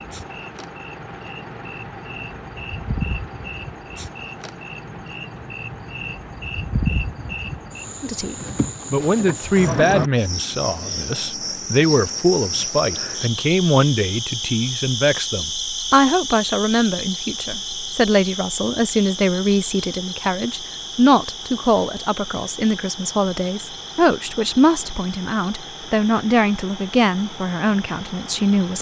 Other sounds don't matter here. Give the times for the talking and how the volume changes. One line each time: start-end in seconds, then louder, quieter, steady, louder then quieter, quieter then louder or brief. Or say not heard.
8.0-28.7 steady.